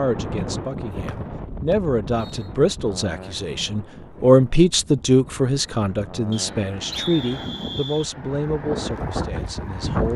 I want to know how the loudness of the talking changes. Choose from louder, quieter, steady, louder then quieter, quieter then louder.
louder then quieter.